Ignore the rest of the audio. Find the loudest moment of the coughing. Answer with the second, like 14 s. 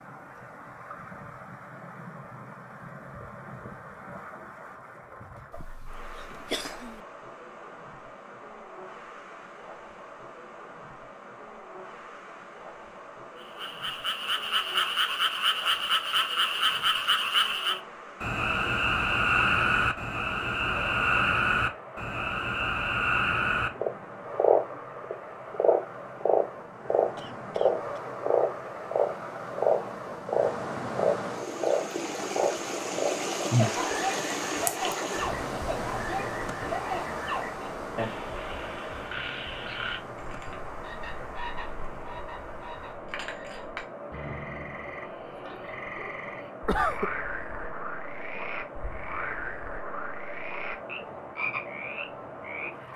47 s.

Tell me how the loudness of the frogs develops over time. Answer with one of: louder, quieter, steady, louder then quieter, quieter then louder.
quieter.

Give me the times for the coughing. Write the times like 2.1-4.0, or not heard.
5.5-7.0, 27.1-28.0, 46.6-47.1.